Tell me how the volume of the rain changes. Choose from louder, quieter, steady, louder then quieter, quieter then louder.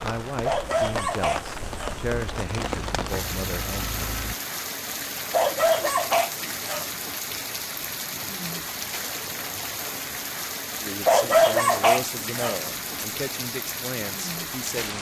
steady.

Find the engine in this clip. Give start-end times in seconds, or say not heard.
1.6-4.3.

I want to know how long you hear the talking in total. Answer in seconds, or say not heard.
8 s.